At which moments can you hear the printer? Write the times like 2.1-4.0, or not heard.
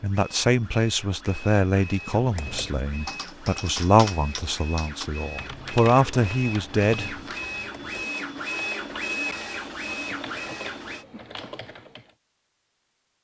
0.0-11.1.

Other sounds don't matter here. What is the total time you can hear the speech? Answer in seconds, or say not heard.
7 s.